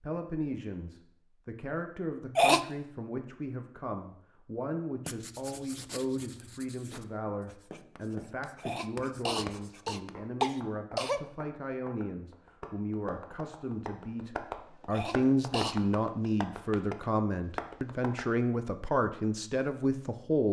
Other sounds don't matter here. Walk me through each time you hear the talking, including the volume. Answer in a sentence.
You can hear the talking from 0.0 to 20.4 s, getting louder.